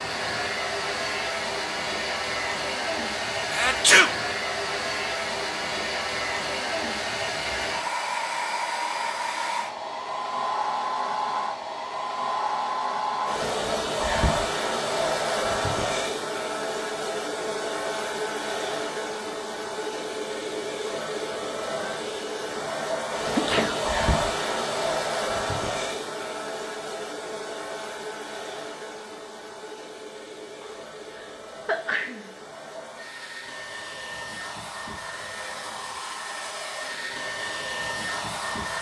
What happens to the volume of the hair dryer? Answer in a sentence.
The loudness of the hair dryer goes down.